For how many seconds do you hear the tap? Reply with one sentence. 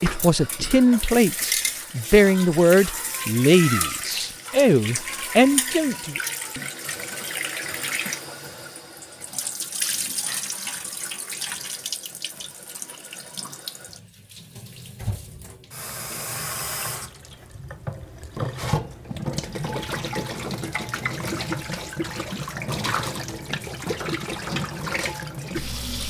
You can hear the tap for 26 seconds altogether.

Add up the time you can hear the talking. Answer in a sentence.
The talking can be heard for 6 seconds in total.